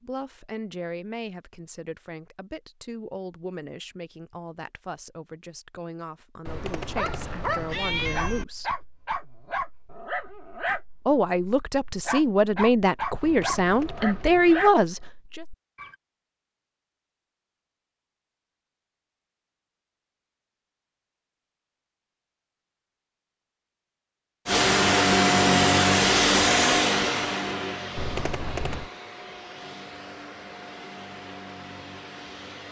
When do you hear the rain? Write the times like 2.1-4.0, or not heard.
not heard.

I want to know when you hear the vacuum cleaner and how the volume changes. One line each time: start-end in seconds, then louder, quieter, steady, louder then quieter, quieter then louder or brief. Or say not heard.
24.4-32.6 quieter.